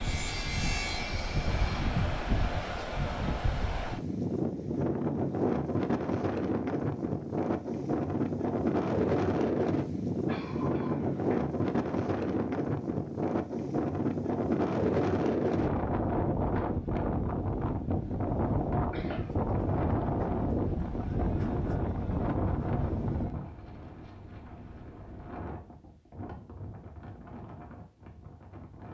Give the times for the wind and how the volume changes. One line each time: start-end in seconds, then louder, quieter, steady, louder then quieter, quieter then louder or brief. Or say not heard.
0.0-28.8 quieter.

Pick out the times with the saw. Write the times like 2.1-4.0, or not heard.
0.0-1.9.